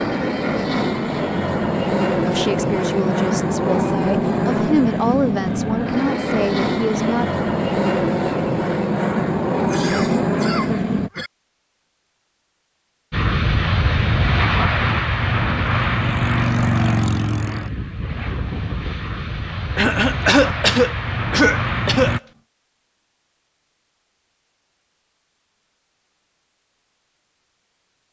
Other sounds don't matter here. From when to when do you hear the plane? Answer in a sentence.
The plane can be heard from 0.0 to 11.1 s and from 13.1 to 22.2 s.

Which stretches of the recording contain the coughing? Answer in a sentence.
The coughing can be heard from 9.6 to 11.3 s and from 19.8 to 22.1 s.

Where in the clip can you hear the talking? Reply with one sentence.
The talking can be heard from 2.2 to 7.3 s.